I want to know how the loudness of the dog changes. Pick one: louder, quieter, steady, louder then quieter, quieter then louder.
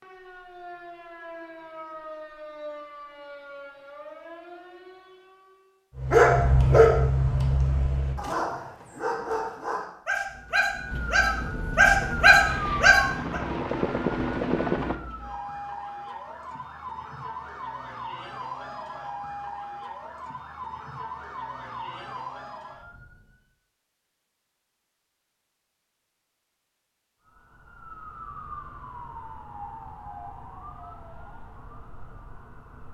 quieter then louder.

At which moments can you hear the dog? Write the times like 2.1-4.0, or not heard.
6.0-13.4.